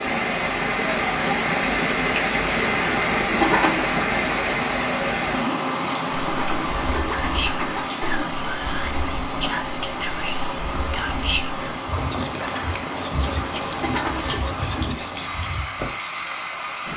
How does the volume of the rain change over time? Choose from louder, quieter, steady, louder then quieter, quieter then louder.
quieter.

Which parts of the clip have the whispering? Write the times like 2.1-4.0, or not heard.
7.2-15.3.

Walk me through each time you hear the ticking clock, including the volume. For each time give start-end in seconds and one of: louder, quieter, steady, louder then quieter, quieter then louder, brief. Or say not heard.
not heard.